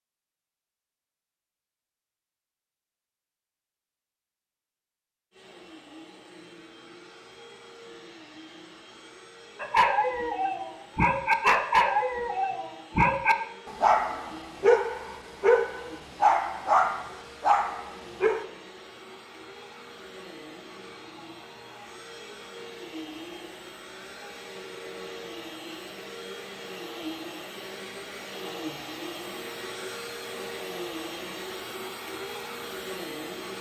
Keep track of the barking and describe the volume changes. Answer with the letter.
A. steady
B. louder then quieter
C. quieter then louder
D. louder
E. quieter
A.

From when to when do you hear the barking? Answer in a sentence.
You can hear the barking from 9.6 to 18.4 s.